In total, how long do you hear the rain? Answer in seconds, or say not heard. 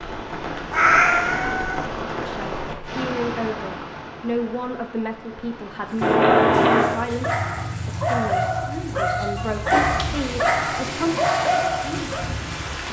13 s.